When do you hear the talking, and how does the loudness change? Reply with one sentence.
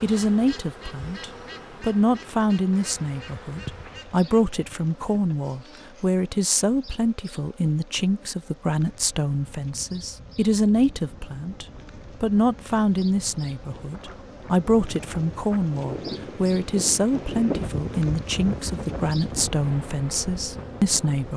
The talking can be heard from 0.0 to 21.3 s, at a steady volume.